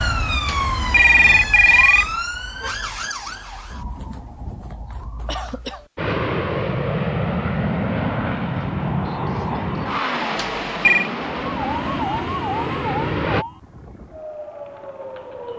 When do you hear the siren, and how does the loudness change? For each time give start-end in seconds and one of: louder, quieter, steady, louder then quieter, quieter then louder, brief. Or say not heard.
0.0-5.8 quieter
11.4-15.5 quieter.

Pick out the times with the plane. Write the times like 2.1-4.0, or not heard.
6.0-13.4.